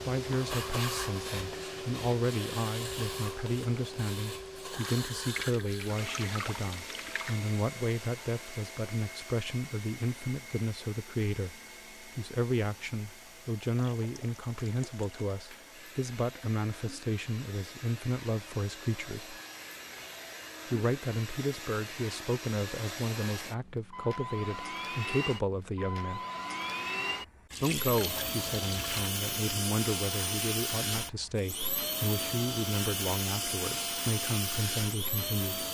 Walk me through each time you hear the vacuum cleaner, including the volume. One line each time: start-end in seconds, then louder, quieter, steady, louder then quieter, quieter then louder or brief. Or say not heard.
0.0-35.6 quieter then louder.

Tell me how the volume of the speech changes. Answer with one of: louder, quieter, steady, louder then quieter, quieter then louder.
steady.